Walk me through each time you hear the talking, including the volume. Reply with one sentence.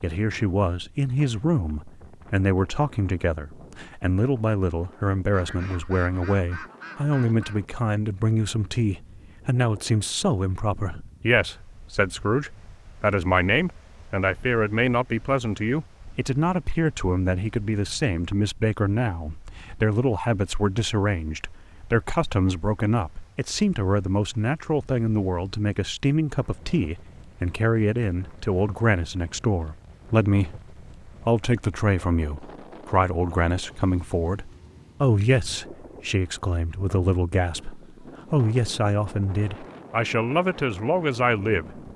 You can hear the talking from 0.0 to 41.9 s, at a steady volume.